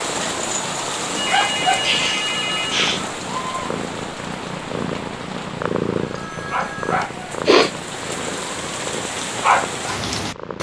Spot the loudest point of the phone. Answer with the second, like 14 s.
2 s.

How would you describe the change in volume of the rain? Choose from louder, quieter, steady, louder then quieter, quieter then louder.
quieter then louder.